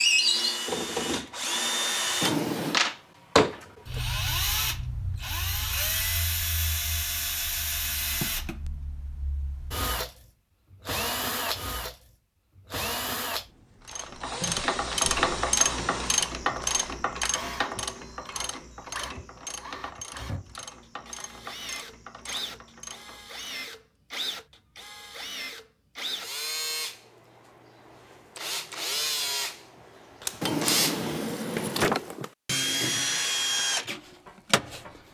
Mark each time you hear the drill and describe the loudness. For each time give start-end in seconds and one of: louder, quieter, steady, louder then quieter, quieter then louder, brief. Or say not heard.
0.0-35.0 quieter then louder.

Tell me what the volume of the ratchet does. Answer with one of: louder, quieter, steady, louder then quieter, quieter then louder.
quieter.